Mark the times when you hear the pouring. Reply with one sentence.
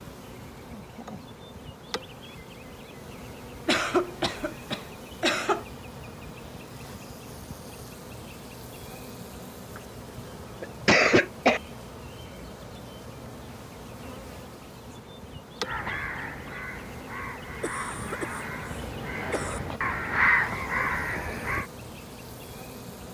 The pouring can't be heard in this clip.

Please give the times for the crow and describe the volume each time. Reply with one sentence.
You can hear the crow from 15.7 to 21.6 s, getting louder.